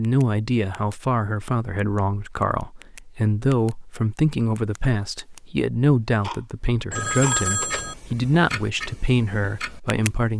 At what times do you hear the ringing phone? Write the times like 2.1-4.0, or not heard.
6.9-8.0.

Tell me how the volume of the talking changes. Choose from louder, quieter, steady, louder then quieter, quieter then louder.
steady.